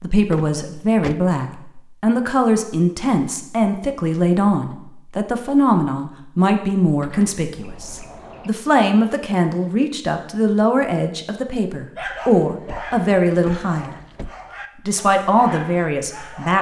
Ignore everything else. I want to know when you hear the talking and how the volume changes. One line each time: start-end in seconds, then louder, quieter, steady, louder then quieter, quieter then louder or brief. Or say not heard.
0.0-13.9 steady
14.8-16.5 brief.